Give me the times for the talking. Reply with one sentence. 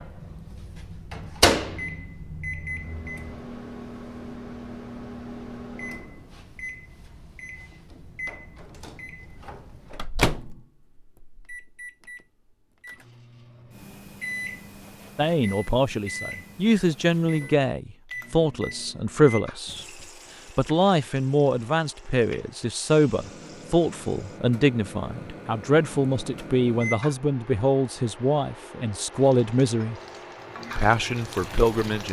The talking can be heard from 15.2 to 19.9 s, from 20.6 to 29.9 s and from 30.8 to 32.0 s.